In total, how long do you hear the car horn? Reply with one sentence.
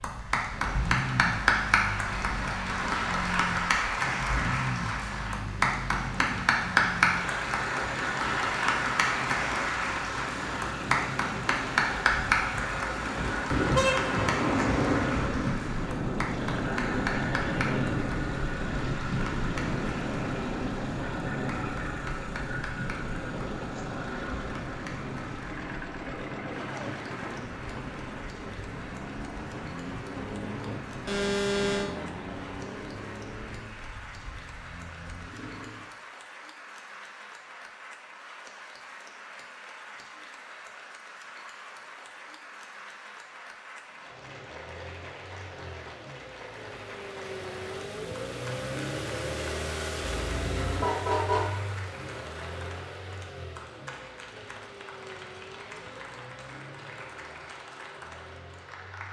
The car horn can be heard for 4 seconds in total.